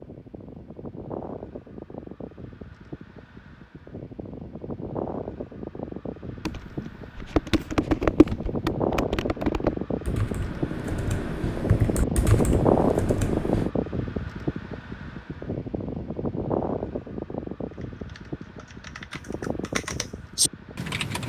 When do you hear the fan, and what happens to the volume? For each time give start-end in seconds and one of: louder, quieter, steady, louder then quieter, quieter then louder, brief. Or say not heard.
0.0-20.9 louder then quieter.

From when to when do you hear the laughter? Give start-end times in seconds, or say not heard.
not heard.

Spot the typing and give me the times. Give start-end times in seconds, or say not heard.
6.5-13.7, 17.7-21.2.